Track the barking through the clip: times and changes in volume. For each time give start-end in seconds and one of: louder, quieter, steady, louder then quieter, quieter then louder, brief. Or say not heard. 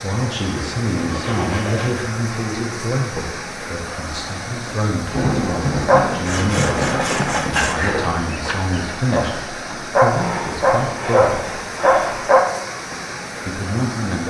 5.5-12.4 quieter then louder.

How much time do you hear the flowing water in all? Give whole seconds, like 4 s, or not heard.
14 s.